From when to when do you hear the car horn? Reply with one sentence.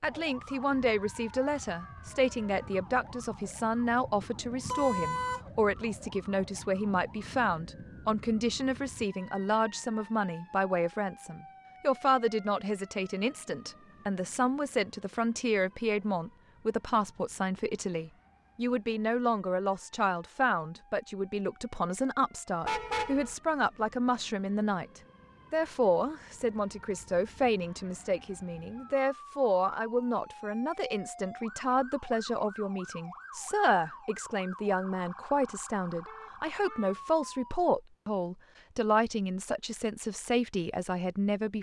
The car horn can be heard from 4.7 to 5.4 s, from 22.6 to 23.4 s and from 36.0 to 37.0 s.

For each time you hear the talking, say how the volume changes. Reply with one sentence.
You can hear the talking from 0.0 to 41.5 s, at a steady volume.